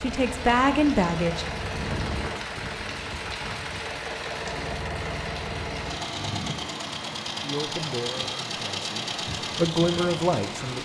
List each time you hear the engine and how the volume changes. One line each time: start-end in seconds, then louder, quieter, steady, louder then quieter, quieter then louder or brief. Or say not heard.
0.0-10.8 steady.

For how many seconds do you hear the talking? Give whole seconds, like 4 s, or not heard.
5 s.